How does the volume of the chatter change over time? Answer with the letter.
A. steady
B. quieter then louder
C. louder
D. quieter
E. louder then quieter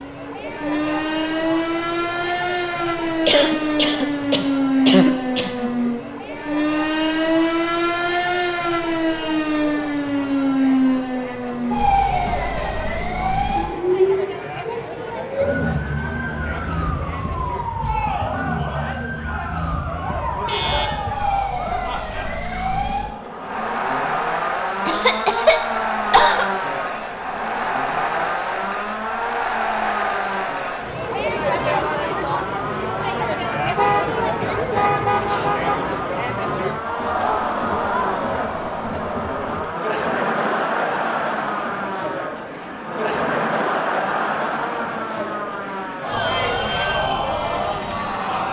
C.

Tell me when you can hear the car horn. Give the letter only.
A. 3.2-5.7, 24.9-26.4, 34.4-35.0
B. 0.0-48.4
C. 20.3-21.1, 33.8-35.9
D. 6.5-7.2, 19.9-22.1
C.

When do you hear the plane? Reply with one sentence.
You can't hear the plane here.